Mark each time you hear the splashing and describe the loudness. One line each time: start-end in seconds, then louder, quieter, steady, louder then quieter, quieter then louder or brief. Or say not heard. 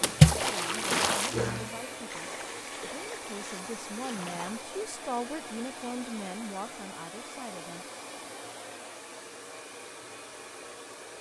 0.0-4.6 quieter.